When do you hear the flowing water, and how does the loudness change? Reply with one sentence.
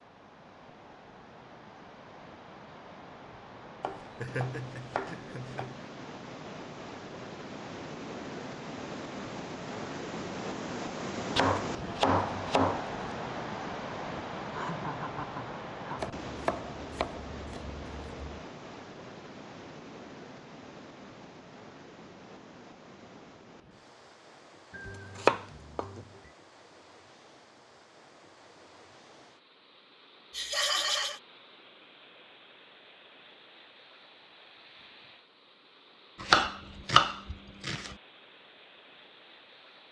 The flowing water can be heard from 0.0 to 39.8 s, getting louder then quieter.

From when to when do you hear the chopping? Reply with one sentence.
The chopping can be heard from 3.8 to 5.7 s, from 11.3 to 12.9 s, from 16.0 to 18.4 s, from 24.8 to 26.0 s and from 36.2 to 37.9 s.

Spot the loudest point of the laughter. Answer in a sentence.
The volume of the laughter peaks at 31 seconds.